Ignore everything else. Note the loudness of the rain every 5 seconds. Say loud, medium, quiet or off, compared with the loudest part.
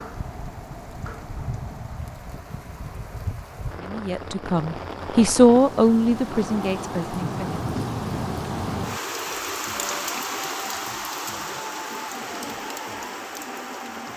medium, loud, loud.